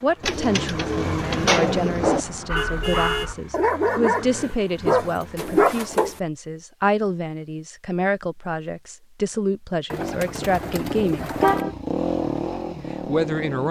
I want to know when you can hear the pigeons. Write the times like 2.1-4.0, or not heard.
0.2-2.2, 5.3-6.2, 9.9-11.7.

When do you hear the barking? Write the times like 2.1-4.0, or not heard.
2.5-5.8.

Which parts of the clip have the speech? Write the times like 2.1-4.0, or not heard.
0.0-11.4, 13.1-13.6.